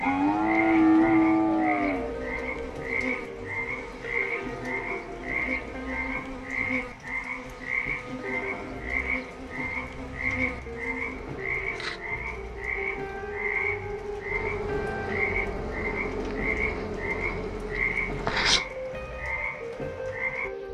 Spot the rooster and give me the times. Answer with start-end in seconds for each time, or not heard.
not heard.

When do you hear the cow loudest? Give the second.
1 s.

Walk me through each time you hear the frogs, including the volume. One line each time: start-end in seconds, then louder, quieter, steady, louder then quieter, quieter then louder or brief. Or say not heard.
0.0-20.6 steady.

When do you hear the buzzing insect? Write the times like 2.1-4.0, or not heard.
0.0-18.6.